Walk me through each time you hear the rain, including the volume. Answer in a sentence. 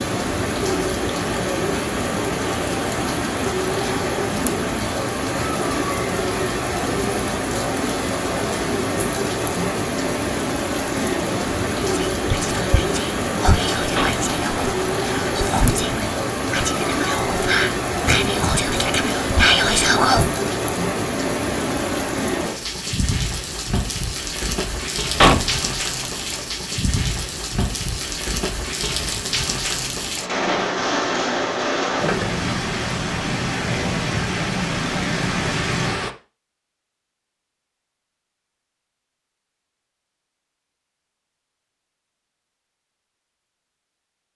The rain can be heard from 0.0 to 36.1 s, at a steady volume.